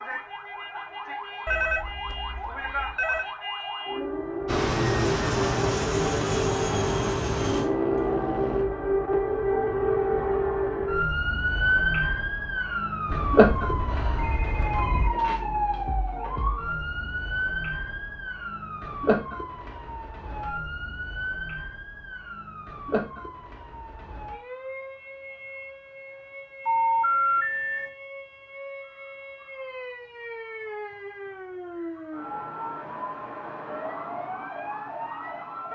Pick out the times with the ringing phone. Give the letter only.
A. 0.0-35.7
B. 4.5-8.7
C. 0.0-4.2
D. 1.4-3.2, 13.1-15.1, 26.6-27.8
D.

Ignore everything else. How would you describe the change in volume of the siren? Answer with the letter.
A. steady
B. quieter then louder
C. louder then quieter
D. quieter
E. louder
C.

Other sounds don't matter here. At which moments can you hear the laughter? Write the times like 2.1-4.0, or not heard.
not heard.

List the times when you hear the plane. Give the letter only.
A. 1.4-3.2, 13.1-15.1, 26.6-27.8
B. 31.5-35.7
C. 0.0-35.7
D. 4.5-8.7
D.